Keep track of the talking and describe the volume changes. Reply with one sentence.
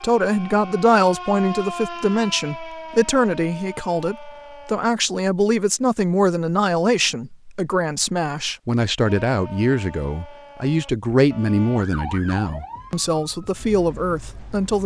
The loudness of the talking stays about the same.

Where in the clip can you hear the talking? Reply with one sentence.
You can hear the talking from 0.0 to 14.8 s.